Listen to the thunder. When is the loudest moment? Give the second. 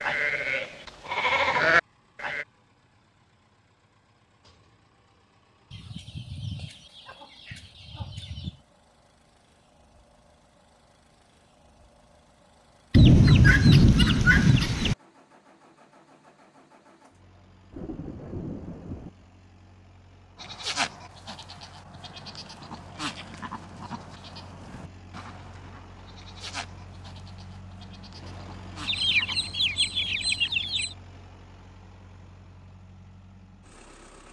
13 s.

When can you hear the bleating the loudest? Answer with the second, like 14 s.
2 s.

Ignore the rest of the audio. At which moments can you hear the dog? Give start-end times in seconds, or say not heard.
not heard.